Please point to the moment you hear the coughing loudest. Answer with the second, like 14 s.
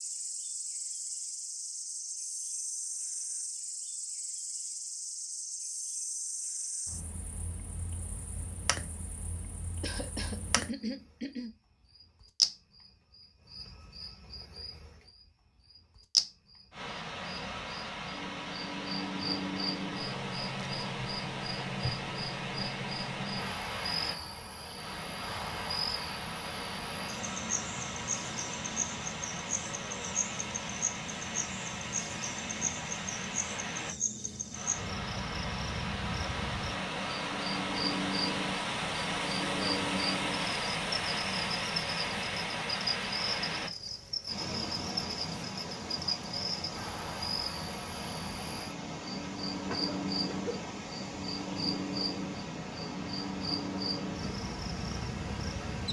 11 s.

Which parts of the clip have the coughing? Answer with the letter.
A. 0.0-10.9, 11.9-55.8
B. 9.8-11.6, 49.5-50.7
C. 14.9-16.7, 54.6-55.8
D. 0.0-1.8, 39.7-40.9
B.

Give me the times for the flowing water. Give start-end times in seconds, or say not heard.
16.7-55.8.